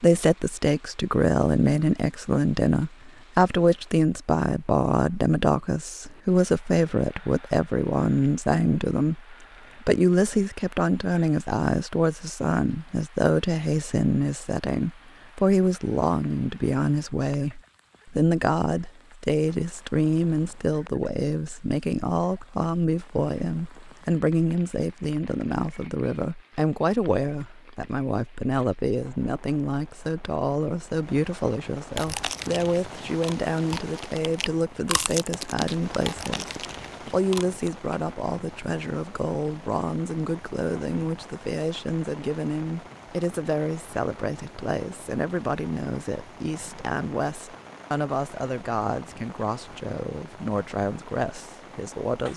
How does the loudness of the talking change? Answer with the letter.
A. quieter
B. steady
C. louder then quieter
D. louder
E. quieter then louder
A.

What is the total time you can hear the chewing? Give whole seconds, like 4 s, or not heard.
6 s.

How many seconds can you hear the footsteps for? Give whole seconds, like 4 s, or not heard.
not heard.